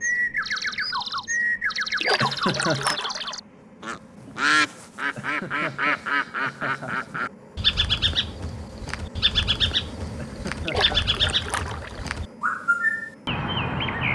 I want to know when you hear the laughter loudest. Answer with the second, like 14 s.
3 s.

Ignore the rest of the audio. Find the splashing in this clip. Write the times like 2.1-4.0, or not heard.
2.0-3.4, 10.7-12.1.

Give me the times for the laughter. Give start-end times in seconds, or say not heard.
2.2-3.0, 5.2-7.1, 10.2-11.1.